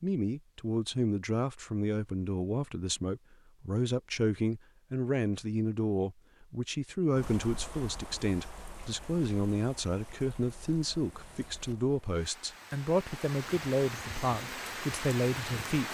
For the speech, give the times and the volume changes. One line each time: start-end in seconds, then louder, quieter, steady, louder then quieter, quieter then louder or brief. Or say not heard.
0.0-15.9 steady.